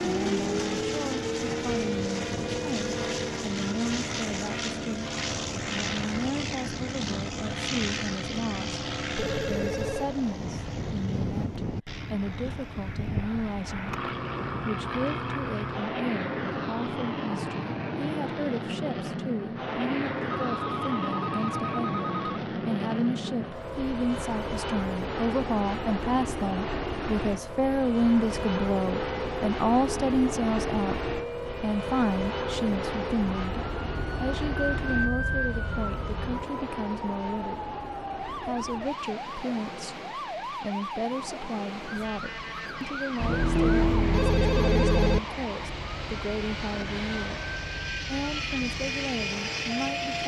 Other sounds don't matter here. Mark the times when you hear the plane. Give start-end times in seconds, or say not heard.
0.0-50.2.